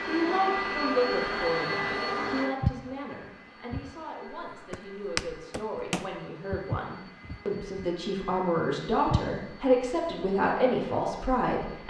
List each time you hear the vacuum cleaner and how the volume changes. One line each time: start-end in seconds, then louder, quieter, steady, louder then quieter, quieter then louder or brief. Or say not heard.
0.0-11.8 quieter.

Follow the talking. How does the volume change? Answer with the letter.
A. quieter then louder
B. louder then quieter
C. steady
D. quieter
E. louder
A.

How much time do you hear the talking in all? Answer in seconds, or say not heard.
12 s.